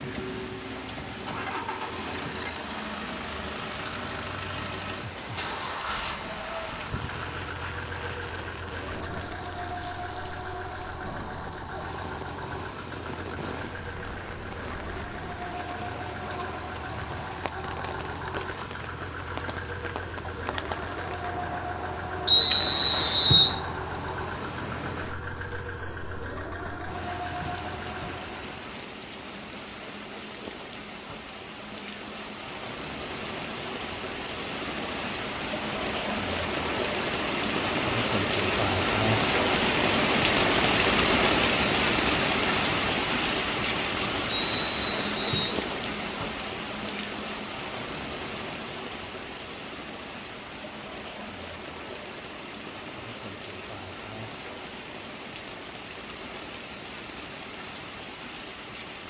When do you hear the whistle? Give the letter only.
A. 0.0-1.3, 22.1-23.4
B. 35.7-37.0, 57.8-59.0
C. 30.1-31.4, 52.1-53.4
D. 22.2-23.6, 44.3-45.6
D.